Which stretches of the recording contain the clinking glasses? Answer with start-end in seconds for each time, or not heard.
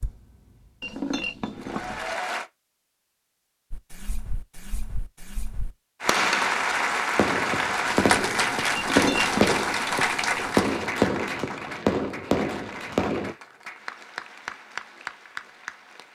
0.8-2.1, 8.8-9.6.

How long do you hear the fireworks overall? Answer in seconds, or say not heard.
10 s.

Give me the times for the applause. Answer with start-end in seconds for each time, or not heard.
0.0-2.5, 6.0-16.0.